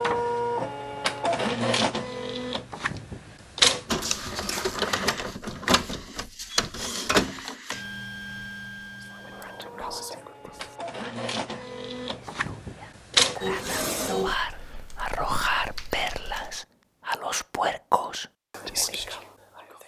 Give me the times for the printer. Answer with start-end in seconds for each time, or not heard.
0.0-14.3.